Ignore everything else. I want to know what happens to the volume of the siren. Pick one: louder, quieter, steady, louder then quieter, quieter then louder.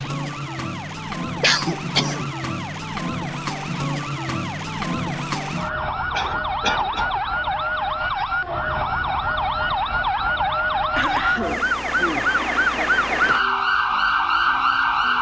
louder.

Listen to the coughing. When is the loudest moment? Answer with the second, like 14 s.
2 s.